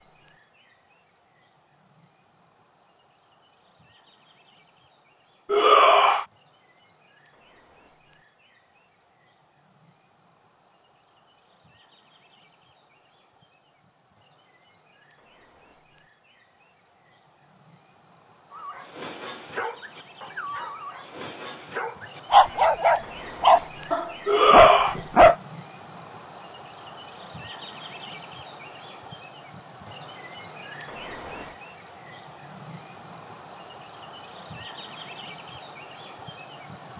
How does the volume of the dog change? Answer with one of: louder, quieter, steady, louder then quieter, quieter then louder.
louder.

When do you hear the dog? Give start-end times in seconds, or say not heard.
18.5-25.4.